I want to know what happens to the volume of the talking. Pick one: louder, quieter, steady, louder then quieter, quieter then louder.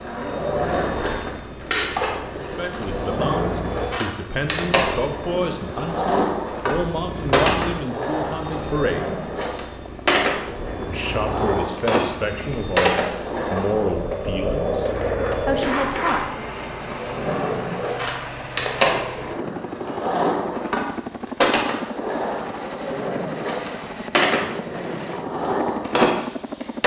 steady.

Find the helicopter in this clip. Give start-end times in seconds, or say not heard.
0.0-26.8.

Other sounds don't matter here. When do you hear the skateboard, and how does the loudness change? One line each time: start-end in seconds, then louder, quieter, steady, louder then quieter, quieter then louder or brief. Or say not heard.
0.0-26.8 steady.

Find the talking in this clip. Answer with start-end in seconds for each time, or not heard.
2.5-9.2, 10.8-16.4.